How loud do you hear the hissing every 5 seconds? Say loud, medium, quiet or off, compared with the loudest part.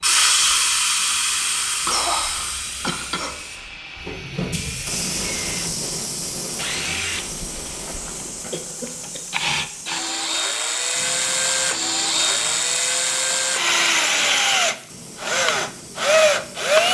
loud, medium, quiet, quiet.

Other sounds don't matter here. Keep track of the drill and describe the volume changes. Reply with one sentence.
The loudness of the drill goes up.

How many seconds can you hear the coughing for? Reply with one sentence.
You can hear the coughing for 2 seconds altogether.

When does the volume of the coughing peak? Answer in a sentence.
The volume of the coughing peaks at 2 seconds.